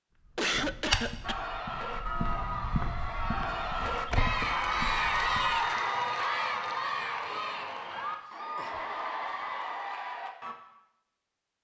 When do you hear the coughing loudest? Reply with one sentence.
The volume of the coughing peaks at 1 second.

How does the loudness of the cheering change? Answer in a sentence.
The volume of the cheering goes up, then down.